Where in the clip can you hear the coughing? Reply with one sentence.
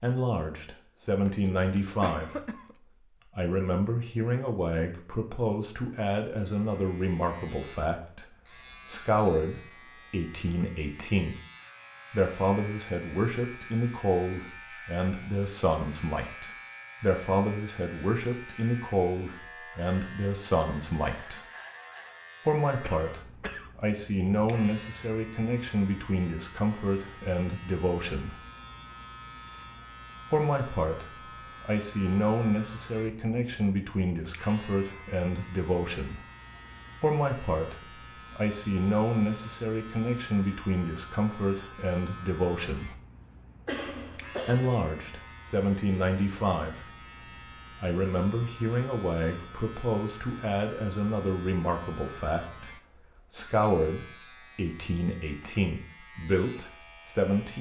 You can hear the coughing from 1.2 to 2.8 s, from 22.8 to 23.8 s and from 43.6 to 44.6 s.